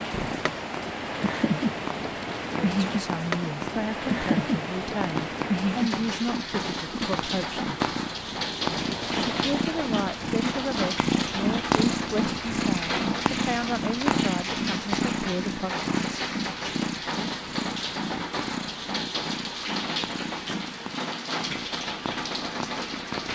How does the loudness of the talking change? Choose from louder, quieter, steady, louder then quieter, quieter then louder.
steady.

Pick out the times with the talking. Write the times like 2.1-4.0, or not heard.
2.6-7.7, 9.3-15.8.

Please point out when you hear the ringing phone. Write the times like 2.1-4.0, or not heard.
not heard.